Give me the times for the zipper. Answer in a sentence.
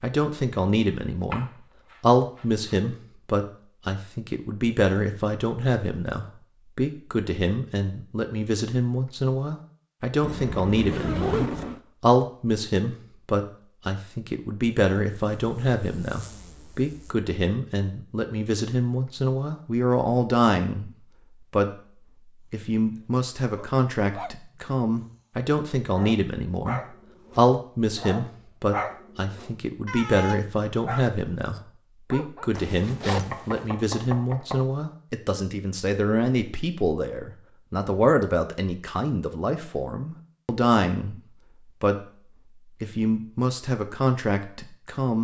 The zipper can be heard from 10.2 to 11.8 s, from 15.2 to 17.1 s and from 32.5 to 33.6 s.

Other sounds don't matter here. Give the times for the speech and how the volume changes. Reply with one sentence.
The speech can be heard from 0.0 to 21.7 s, at a steady volume; from 22.5 to 42.0 s, at a steady volume; and briefly from 42.8 to 45.1 s.